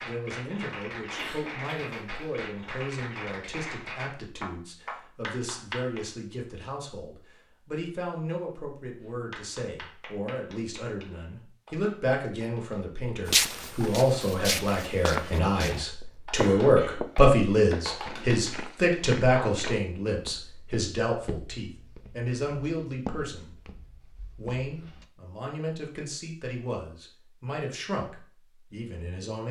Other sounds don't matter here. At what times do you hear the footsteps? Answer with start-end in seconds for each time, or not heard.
13.2-25.1.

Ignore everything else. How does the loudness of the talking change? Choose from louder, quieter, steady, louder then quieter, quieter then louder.
louder then quieter.